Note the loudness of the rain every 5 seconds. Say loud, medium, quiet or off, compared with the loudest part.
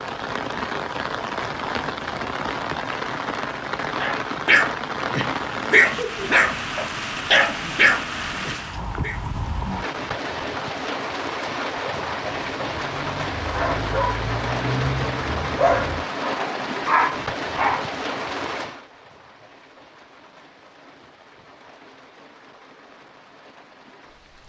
loud, loud, loud, loud, quiet.